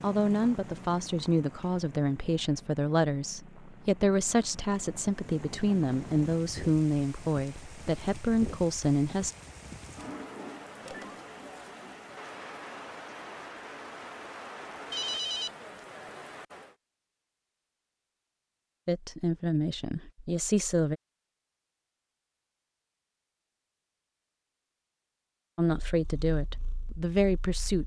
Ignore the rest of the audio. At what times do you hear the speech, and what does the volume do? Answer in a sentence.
The speech can be heard from 0.0 to 9.3 s, at a steady volume; briefly from 18.9 to 20.9 s; and briefly from 25.6 to 27.8 s.